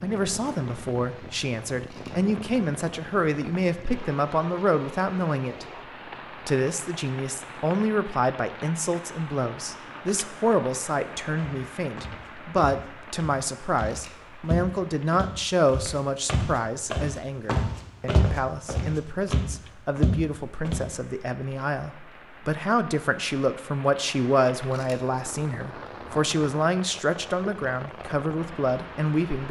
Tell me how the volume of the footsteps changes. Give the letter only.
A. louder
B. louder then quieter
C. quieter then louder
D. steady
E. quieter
A.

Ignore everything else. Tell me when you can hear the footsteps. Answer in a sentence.
The footsteps can be heard from 11.3 to 20.8 s.